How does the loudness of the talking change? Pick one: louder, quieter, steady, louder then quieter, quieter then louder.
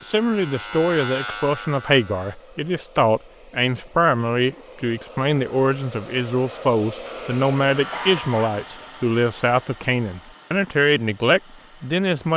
steady.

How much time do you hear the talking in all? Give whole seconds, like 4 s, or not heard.
12 s.